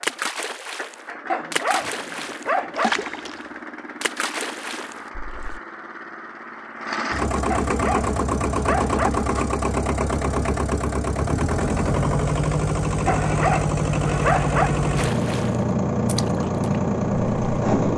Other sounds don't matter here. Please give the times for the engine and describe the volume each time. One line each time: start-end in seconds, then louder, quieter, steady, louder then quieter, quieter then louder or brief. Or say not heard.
0.0-17.9 louder.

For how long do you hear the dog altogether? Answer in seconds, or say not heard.
5 s.